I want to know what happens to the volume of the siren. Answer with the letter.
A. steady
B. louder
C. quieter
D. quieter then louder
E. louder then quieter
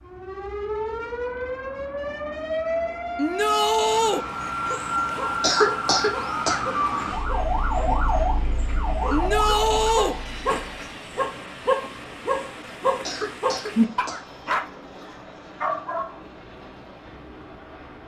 A.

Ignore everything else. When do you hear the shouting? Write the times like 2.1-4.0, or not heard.
3.1-4.2, 9.1-10.2.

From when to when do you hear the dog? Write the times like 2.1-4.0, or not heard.
4.2-16.1.